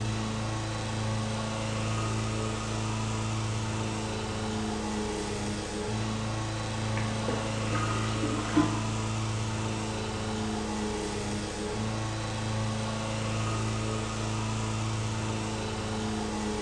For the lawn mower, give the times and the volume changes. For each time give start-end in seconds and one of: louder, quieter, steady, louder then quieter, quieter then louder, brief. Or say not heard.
0.0-16.5 steady.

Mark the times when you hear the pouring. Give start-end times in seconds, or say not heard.
6.8-8.7.